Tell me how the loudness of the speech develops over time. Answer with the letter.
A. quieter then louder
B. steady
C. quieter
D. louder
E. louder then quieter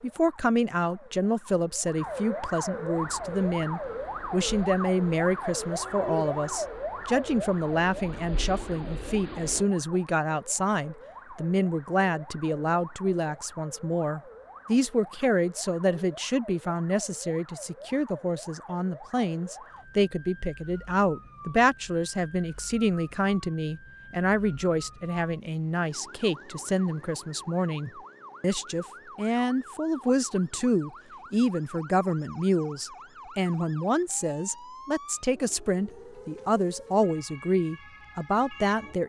B.